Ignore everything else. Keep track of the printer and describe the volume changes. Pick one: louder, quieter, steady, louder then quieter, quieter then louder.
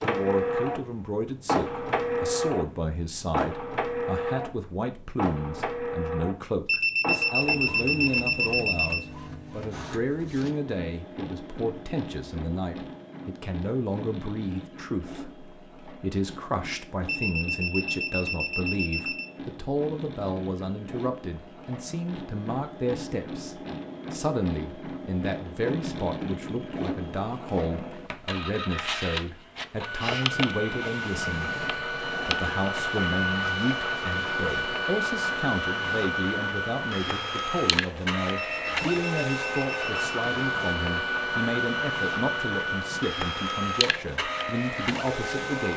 quieter then louder.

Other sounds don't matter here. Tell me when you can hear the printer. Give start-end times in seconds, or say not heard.
0.0-45.7.